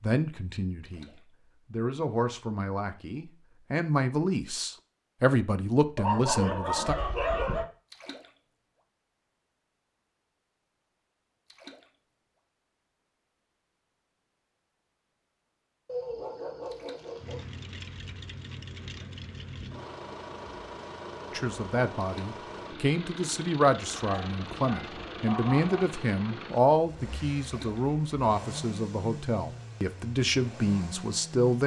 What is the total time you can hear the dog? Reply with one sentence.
The dog can be heard for 5 seconds in total.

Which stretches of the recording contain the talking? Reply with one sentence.
The talking can be heard from 0.0 to 1.1 s, from 1.7 to 7.0 s and from 21.3 to 31.6 s.